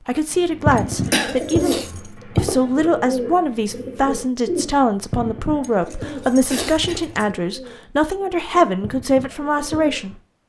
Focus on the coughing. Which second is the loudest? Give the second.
1 s.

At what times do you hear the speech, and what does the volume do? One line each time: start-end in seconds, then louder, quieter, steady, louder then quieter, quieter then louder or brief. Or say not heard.
0.1-10.2 steady.